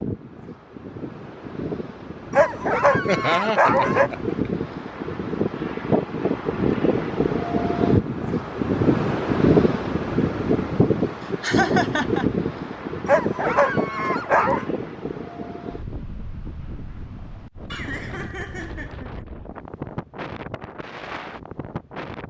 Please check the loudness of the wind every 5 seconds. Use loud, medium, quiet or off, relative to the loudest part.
medium, loud, loud, quiet, quiet.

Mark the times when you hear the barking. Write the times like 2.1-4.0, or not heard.
2.3-4.1, 13.1-14.7.